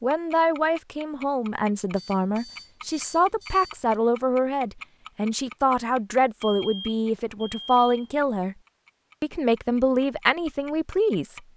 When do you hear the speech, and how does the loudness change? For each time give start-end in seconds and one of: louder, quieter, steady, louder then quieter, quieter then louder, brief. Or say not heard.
0.0-8.6 steady
9.2-11.4 brief.